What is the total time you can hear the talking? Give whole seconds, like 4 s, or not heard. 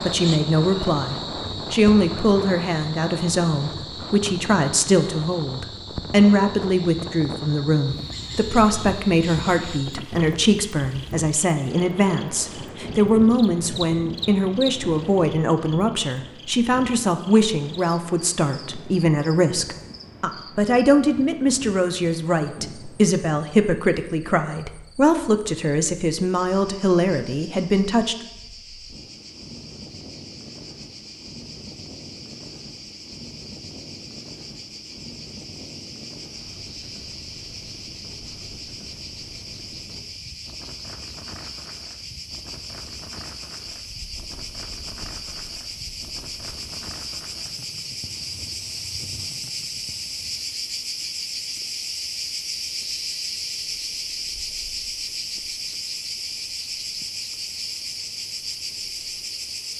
28 s.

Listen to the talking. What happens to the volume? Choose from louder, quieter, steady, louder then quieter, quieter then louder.
steady.